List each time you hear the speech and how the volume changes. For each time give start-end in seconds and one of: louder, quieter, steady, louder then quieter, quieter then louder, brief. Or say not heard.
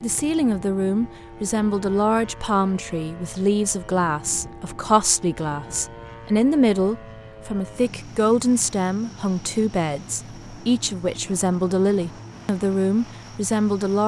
0.0-14.0 steady.